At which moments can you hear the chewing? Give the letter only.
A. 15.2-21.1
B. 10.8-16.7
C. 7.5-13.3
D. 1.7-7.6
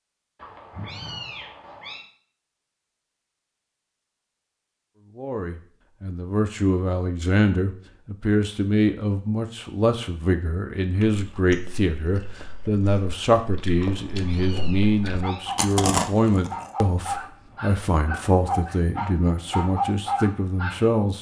B.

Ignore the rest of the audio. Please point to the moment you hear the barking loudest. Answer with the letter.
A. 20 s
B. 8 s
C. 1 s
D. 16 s
A.